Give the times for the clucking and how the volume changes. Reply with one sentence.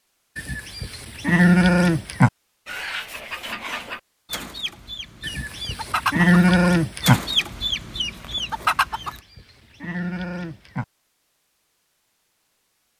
The clucking can be heard from 2.6 to 9.2 s, getting louder.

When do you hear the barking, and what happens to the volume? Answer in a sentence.
The barking can't be heard in this clip.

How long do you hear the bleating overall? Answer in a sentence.
The bleating can be heard for 6 seconds in total.